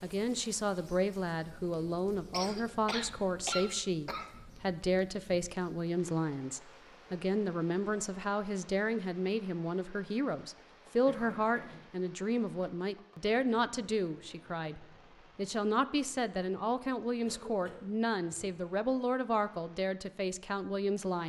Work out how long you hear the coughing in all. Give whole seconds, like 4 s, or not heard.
3 s.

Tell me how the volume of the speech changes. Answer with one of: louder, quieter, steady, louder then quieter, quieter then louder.
steady.